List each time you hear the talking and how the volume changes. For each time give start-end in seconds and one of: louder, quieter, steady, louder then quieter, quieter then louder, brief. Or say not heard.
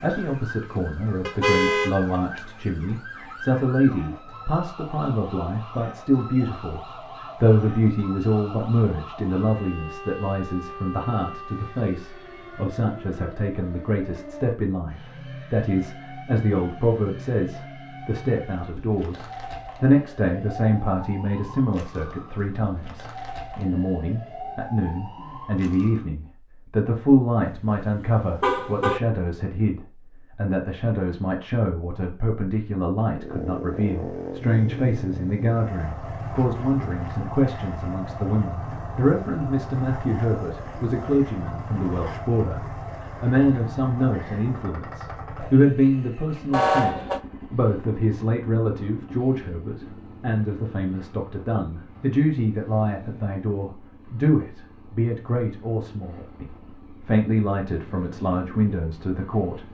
0.0-59.6 steady.